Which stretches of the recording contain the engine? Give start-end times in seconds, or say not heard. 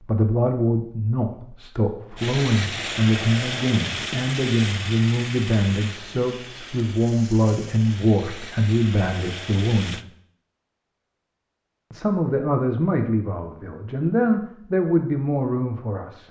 2.1-10.1.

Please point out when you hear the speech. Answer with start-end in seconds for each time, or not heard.
0.0-10.0, 11.9-16.2.